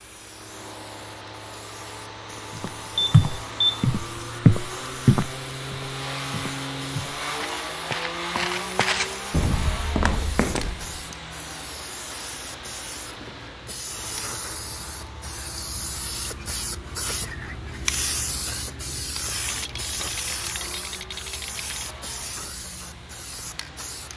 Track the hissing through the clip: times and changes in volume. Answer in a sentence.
The hissing can be heard from 0.0 to 24.1 s, getting louder.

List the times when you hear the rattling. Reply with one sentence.
You can hear the rattling from 19.4 to 21.9 s.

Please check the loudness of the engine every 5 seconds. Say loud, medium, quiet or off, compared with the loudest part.
medium, loud, medium, quiet, quiet.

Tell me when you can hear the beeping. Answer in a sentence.
You can hear the beeping from 3.0 to 3.9 s.